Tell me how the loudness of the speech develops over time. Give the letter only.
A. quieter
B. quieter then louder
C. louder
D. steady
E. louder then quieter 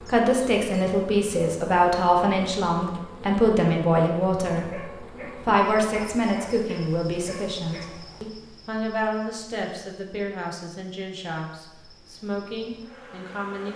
A.